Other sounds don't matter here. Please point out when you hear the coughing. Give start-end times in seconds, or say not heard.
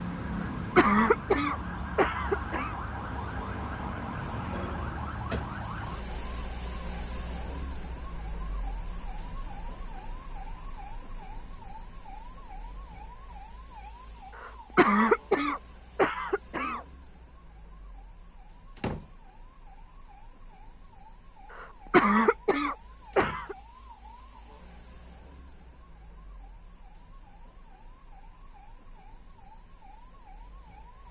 0.3-2.8, 14.3-16.8, 21.5-23.6.